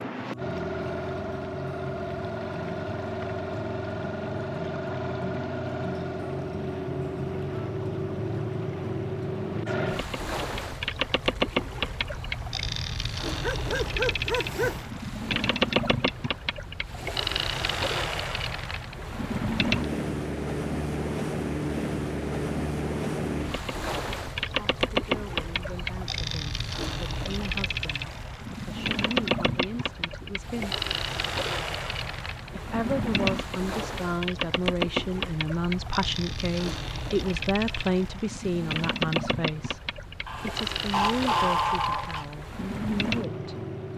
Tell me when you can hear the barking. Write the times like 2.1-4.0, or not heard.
13.4-14.8, 40.2-42.2.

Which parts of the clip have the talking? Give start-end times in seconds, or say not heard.
24.6-30.8, 32.5-43.6.